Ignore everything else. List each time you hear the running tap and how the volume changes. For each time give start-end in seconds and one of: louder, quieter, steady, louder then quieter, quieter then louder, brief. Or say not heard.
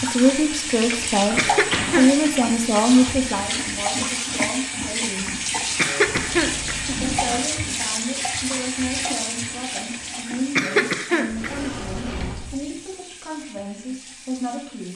0.0-14.9 quieter.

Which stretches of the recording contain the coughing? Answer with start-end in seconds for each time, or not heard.
1.1-2.3, 5.8-7.0, 10.6-11.7.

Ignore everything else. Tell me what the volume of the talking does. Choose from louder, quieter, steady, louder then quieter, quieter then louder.
quieter.